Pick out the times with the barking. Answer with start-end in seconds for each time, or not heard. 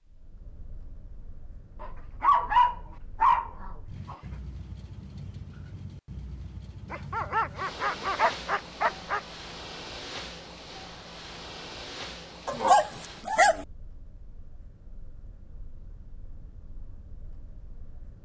1.8-4.2, 6.9-9.2, 12.4-13.7.